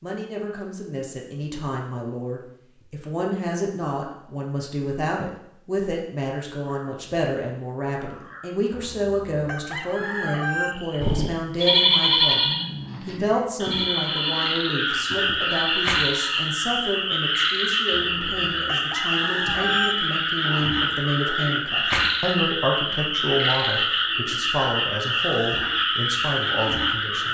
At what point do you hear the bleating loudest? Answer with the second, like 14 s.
12 s.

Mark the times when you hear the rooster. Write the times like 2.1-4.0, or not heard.
8.7-10.8, 17.9-19.9.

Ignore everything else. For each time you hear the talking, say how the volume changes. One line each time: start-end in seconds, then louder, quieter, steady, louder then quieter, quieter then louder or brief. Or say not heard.
0.0-27.2 steady.